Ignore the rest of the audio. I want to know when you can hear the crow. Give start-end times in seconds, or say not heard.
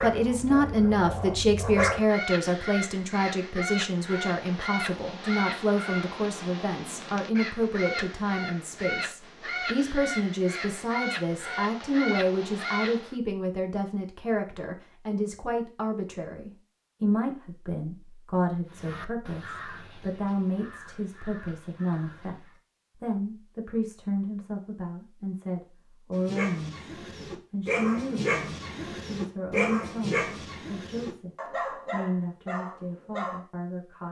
2.0-13.2, 18.6-22.6.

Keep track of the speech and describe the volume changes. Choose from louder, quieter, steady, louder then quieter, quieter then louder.
quieter.